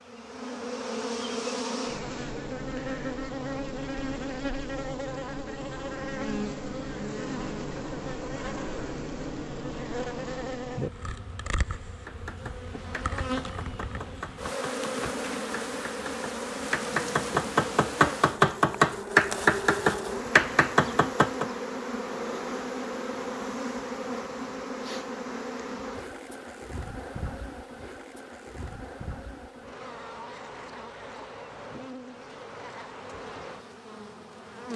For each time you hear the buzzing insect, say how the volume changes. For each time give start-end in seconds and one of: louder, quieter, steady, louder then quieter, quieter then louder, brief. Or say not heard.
0.0-34.7 quieter.